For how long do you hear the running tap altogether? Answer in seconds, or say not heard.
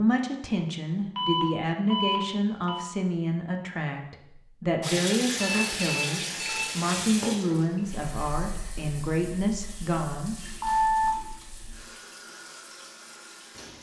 9 s.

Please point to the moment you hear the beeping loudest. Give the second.
11 s.